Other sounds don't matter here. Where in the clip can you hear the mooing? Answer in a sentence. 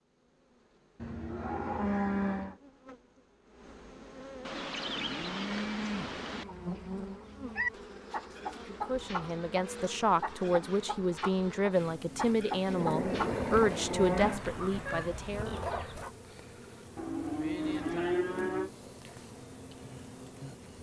The mooing can be heard from 1.0 to 2.5 s, from 4.5 to 6.5 s, from 8.8 to 10.2 s, from 12.7 to 14.4 s and from 16.9 to 18.7 s.